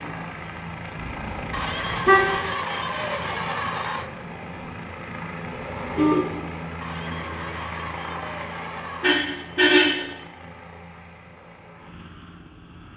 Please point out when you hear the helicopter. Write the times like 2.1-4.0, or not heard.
0.0-12.9.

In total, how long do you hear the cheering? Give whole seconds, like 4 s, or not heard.
5 s.